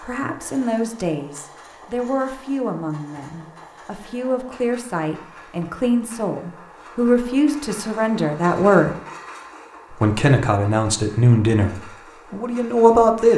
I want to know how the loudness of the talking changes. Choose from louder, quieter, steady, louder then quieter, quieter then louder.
louder.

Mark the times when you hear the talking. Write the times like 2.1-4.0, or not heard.
0.0-9.0, 9.9-13.3.